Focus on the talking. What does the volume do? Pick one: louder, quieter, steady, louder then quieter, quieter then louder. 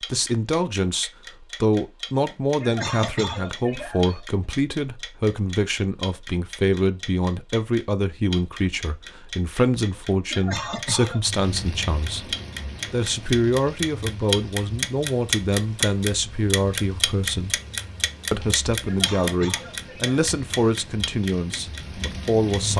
steady.